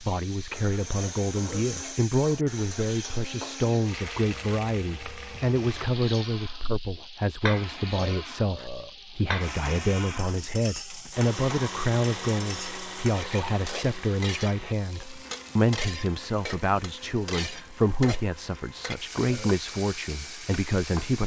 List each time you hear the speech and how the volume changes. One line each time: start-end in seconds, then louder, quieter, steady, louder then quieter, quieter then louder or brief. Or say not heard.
0.0-21.2 steady.